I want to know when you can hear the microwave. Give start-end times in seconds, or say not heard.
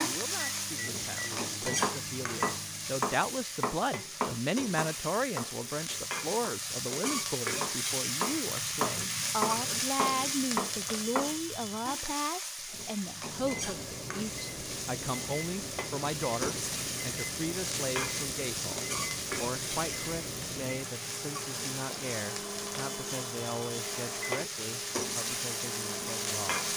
0.0-3.0, 13.0-26.7.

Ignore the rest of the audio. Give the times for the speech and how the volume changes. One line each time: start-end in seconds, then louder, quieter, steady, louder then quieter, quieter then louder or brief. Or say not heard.
0.0-26.7 quieter.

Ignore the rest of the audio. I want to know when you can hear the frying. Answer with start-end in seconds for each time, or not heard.
0.0-26.7.